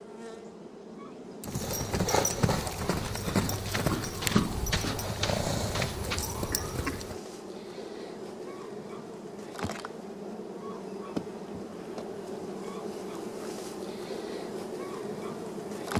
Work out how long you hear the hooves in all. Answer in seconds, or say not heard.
6 s.